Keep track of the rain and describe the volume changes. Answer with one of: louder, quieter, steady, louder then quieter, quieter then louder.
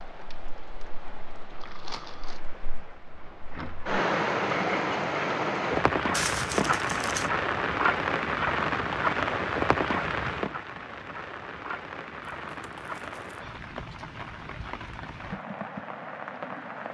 louder then quieter.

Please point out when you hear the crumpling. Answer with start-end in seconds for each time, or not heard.
1.6-2.4, 6.1-7.3, 12.4-13.4.